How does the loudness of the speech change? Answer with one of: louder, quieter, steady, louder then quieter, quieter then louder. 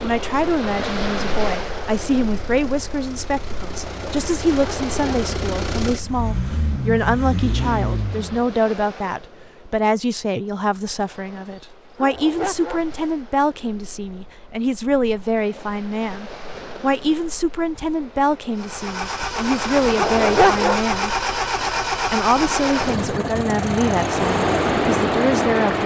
steady.